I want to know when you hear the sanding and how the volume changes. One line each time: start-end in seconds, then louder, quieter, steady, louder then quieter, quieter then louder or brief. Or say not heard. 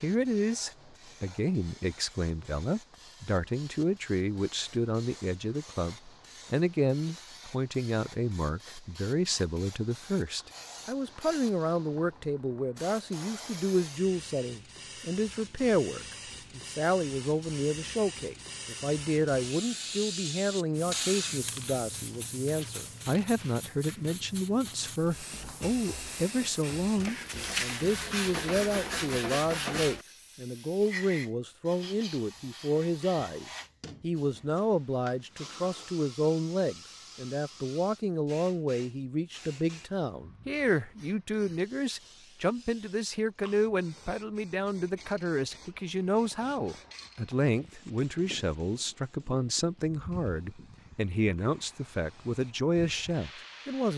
20.7-30.1 quieter then louder.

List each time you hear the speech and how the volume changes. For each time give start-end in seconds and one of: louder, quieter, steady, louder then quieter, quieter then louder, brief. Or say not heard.
0.0-53.9 steady.